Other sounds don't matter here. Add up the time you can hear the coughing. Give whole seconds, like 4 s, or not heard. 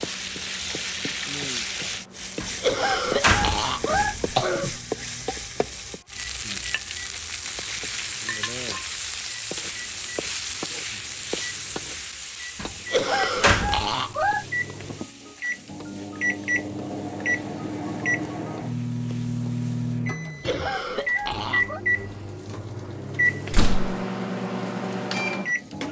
5 s.